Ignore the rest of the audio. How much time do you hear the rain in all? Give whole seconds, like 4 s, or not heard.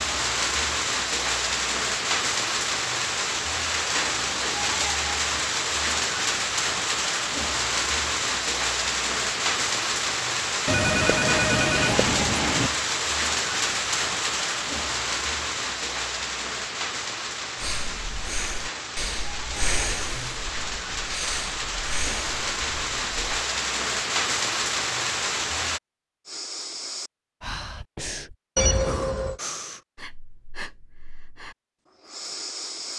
26 s.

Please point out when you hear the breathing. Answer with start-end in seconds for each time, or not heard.
17.6-23.2, 26.2-32.9.